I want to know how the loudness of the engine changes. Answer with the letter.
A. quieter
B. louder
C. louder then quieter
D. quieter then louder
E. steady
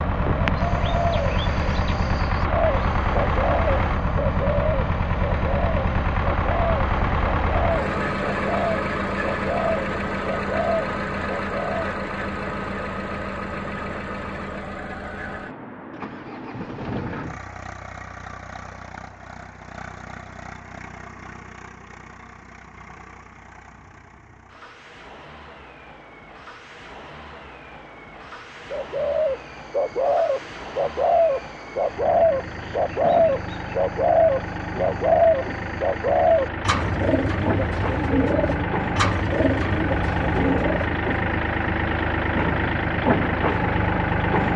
D.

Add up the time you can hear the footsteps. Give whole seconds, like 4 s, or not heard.
not heard.